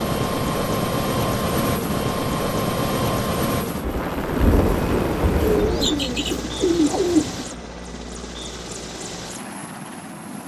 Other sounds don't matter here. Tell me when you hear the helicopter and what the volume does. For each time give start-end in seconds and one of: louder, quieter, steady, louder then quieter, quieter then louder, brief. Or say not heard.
0.0-10.4 quieter.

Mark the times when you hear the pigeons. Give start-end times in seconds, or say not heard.
5.3-7.5.